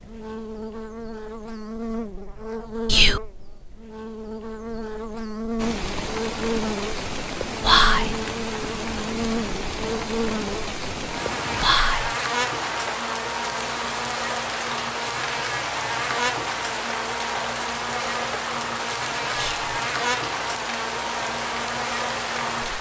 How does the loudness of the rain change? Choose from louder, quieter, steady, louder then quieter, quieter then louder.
steady.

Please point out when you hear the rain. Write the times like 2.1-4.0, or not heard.
5.5-22.7.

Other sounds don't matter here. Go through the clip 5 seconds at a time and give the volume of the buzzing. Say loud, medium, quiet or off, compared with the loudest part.
medium, loud, loud, loud, loud.